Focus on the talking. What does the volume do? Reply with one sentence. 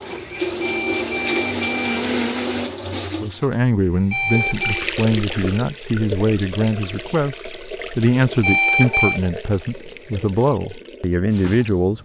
The loudness of the talking stays about the same.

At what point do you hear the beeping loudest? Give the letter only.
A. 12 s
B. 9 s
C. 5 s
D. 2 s
B.